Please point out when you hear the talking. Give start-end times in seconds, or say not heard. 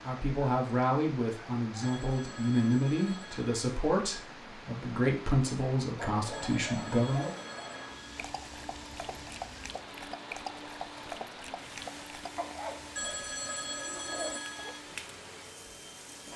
0.0-7.3.